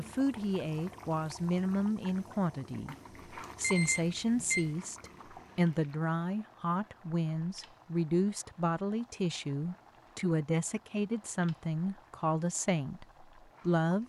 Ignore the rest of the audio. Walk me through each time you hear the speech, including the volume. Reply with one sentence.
You can hear the speech from 0.0 to 14.0 s, at a steady volume.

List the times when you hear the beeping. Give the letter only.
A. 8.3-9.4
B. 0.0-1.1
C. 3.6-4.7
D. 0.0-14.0
C.